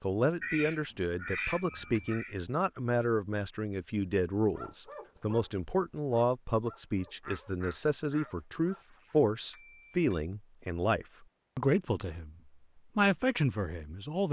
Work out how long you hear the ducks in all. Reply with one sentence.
The ducks can be heard for 4 seconds in total.